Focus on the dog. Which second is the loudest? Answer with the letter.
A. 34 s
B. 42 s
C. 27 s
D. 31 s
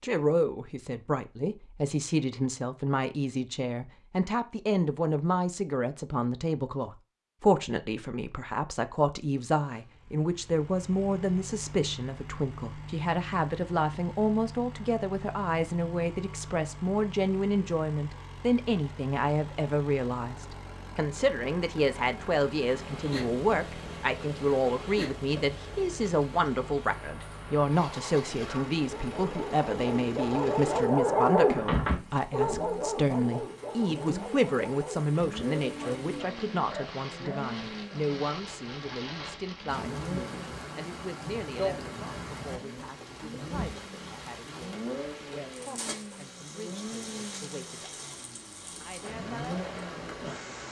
D.